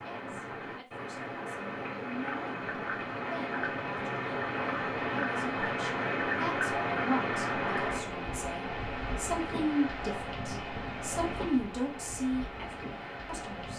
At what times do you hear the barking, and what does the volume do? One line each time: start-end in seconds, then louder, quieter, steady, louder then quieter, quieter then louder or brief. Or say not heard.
not heard.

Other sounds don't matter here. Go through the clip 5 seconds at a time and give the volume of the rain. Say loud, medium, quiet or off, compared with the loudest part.
loud, loud, medium.